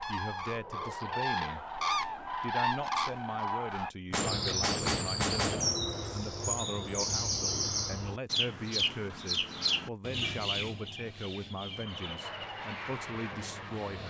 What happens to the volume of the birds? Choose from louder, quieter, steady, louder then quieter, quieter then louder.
quieter.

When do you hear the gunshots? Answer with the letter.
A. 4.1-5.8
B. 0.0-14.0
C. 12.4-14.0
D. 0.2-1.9
A.